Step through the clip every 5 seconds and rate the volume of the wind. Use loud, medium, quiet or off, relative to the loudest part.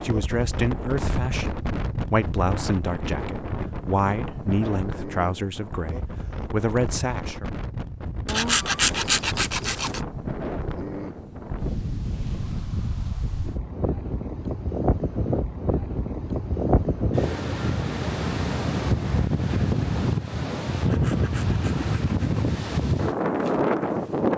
medium, medium, medium, loud, loud.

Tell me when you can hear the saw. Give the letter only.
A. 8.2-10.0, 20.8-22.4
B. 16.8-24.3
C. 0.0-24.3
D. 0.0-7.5
A.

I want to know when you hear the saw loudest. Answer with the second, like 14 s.
9 s.